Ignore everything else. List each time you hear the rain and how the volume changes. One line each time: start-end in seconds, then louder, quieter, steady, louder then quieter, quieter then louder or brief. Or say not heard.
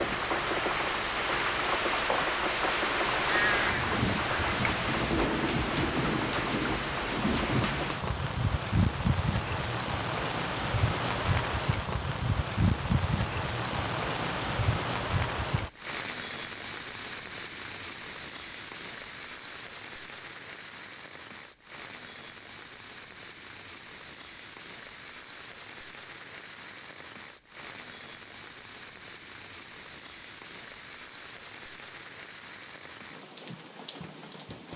0.0-34.7 quieter.